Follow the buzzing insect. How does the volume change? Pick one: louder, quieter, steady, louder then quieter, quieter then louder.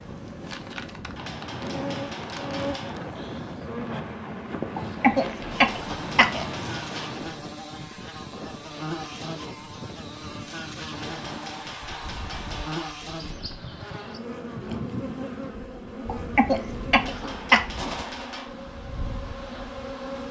steady.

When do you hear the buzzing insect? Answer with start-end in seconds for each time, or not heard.
0.0-20.2.